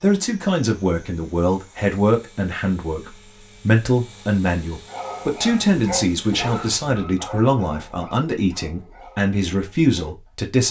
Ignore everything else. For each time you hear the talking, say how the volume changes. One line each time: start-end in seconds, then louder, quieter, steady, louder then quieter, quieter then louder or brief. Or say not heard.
0.0-10.6 steady.